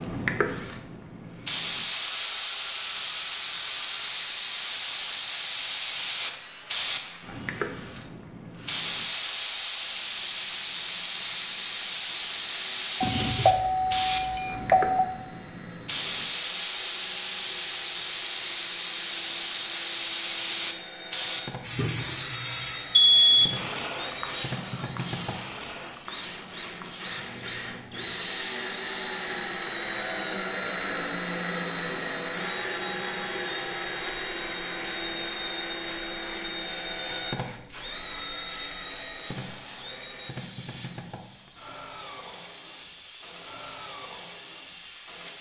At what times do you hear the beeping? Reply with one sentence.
The beeping can be heard from 13.0 to 15.0 s and from 23.1 to 23.6 s.